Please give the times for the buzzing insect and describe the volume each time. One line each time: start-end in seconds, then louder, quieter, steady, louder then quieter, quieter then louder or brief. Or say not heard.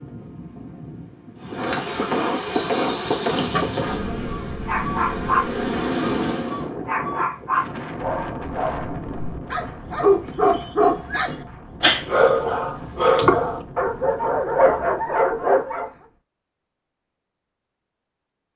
1.4-6.7 quieter then louder.